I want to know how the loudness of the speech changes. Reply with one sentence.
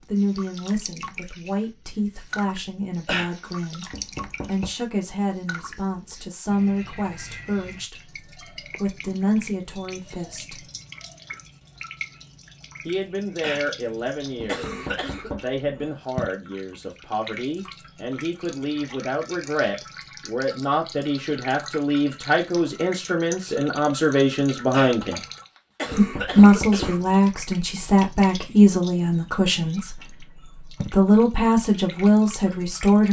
The volume of the speech goes up.